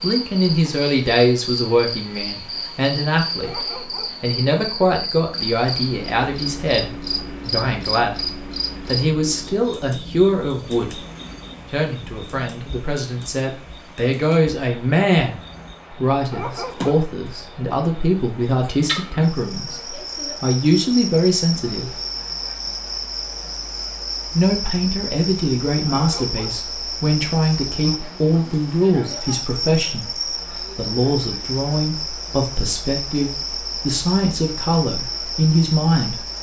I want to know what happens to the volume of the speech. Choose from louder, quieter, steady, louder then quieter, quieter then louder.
steady.